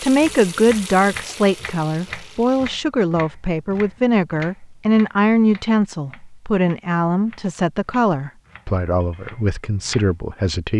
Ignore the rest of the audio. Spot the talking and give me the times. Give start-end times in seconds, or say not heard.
0.0-10.7.